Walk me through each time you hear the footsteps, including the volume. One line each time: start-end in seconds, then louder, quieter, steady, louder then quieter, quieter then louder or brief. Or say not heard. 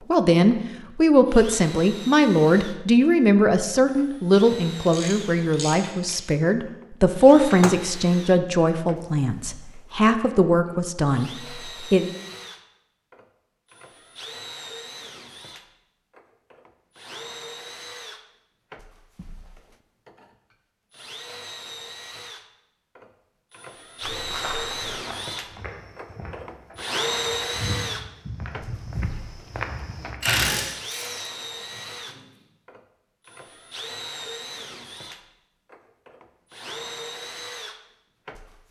24.0-30.1 quieter then louder.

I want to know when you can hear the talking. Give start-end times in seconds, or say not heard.
0.1-12.1.